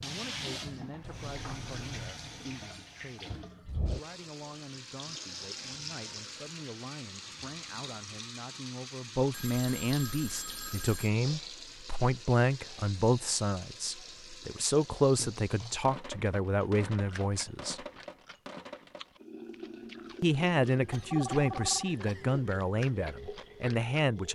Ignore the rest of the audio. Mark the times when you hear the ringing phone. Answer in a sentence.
You can hear the ringing phone from 1.0 to 2.1 s, from 9.3 to 11.1 s and from 21.1 to 21.9 s.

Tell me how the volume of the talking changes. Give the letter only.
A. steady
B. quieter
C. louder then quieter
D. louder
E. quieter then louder
D.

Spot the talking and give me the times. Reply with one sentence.
You can hear the talking from 0.0 to 17.9 s and from 20.2 to 24.2 s.